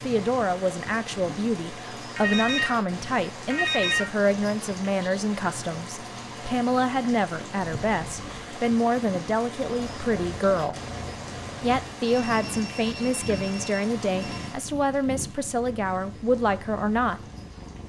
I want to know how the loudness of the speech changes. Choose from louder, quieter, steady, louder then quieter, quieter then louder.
steady.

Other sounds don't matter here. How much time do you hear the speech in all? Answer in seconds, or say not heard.
16 s.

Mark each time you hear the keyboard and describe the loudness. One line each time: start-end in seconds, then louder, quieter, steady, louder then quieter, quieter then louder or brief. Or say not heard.
not heard.